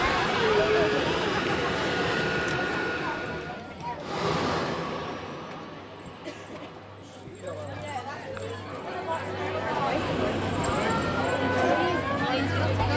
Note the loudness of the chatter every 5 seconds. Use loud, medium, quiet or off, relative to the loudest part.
loud, medium, loud.